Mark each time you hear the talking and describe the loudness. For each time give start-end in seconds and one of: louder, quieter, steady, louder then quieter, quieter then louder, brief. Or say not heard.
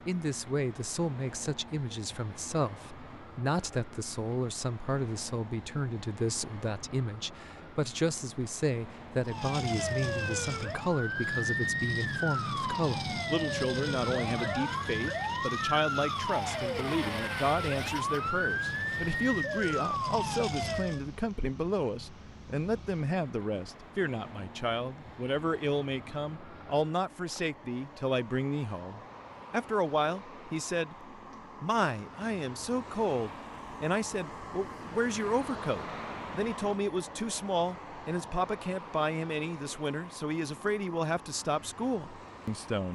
0.1-42.8 steady.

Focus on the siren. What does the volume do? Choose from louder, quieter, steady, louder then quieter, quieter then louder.
steady.